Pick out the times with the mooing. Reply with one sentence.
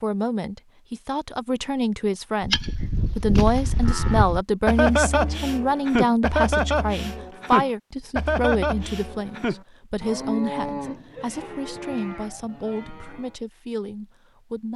You can hear the mooing from 2.4 to 13.3 s.